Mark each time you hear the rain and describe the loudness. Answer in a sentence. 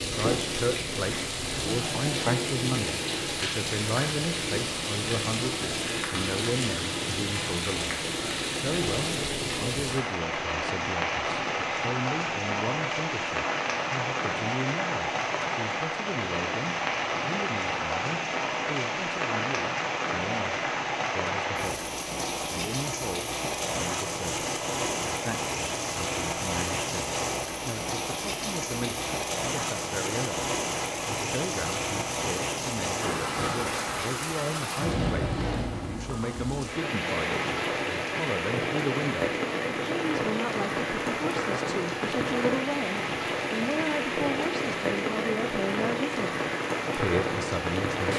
You can hear the rain from 0.0 to 48.1 s, at a steady volume.